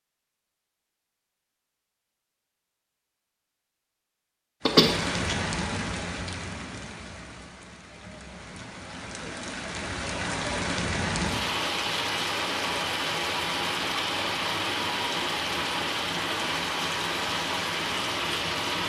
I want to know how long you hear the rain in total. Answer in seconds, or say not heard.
14 s.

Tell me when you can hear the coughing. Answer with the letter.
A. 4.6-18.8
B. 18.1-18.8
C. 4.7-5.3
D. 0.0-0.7
C.